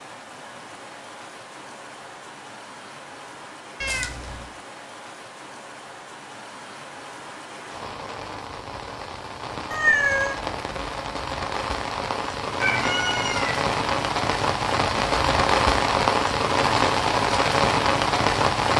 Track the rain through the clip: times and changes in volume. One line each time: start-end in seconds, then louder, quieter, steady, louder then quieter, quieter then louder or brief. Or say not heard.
0.0-18.7 louder.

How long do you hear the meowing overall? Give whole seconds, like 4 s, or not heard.
2 s.